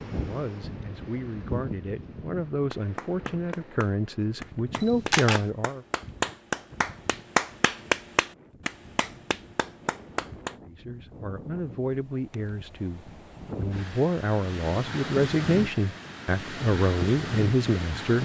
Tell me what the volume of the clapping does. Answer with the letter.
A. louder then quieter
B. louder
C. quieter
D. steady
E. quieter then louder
A.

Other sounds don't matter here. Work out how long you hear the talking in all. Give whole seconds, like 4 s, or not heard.
13 s.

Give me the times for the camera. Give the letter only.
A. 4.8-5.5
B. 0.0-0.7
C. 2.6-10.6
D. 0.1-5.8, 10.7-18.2
A.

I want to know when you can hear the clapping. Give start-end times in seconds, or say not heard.
2.6-10.6.